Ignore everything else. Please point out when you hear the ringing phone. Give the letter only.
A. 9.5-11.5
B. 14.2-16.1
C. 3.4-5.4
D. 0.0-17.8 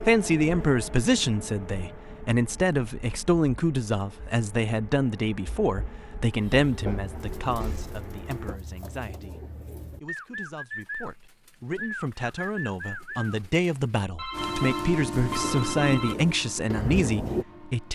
B.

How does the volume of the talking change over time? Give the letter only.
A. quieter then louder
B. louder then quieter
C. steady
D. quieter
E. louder
A.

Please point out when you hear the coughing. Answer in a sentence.
The coughing can't be heard in this clip.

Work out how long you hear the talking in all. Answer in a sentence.
The talking can be heard for 18 seconds in total.